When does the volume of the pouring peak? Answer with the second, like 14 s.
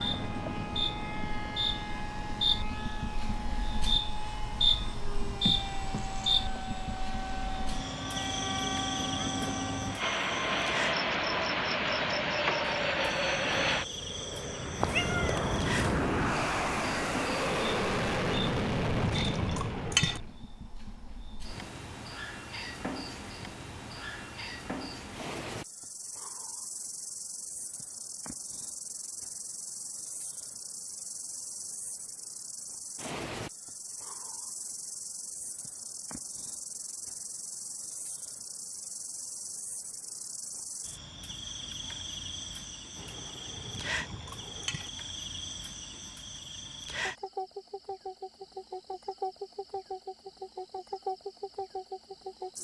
20 s.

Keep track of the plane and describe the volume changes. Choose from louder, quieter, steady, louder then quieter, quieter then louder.
louder.